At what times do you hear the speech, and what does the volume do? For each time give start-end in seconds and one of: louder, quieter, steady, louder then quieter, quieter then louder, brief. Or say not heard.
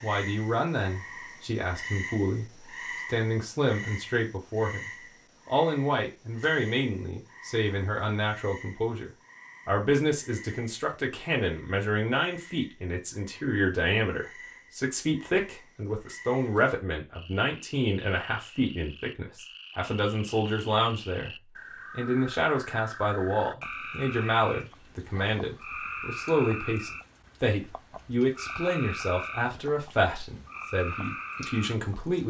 0.0-21.3 steady
21.9-32.2 steady.